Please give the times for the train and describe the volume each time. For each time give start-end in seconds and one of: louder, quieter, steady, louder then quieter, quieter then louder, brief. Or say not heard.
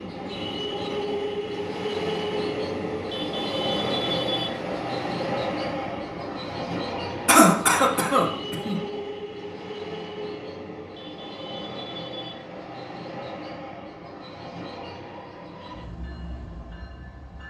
0.0-17.4 quieter.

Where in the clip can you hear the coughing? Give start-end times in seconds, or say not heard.
7.2-8.8.